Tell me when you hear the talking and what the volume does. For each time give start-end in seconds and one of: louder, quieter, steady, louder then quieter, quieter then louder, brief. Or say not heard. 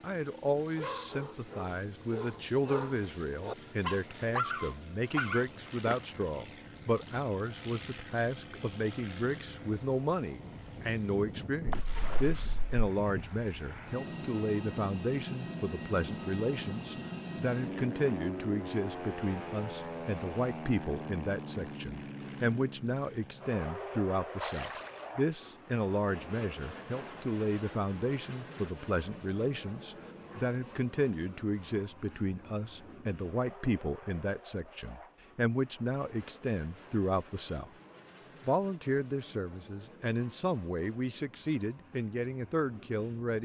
0.0-37.7 steady
38.4-43.3 steady.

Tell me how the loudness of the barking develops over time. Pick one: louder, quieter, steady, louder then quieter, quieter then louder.
louder.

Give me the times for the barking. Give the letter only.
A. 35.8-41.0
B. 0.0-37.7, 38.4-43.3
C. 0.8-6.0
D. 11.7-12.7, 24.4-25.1
C.